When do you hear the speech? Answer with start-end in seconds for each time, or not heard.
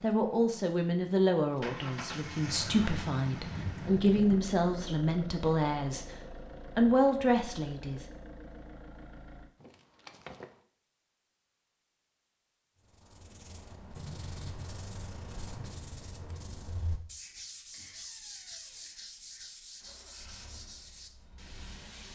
0.0-6.0, 6.8-8.1.